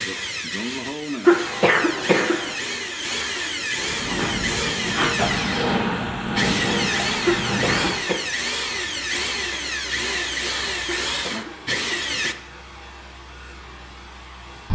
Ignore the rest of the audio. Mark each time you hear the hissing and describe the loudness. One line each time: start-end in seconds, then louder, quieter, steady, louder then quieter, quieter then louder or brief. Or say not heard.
3.8-14.7 quieter.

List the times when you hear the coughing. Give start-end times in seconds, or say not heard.
1.2-2.5, 7.2-8.2, 11.1-12.4.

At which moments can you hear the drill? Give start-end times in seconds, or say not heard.
0.0-12.3.